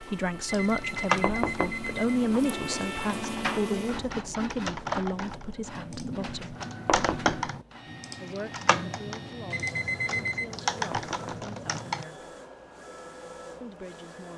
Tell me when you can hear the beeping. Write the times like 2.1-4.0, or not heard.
0.5-2.0, 9.5-10.5.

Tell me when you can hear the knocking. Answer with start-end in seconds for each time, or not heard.
1.2-1.9, 6.8-7.5, 10.9-11.5.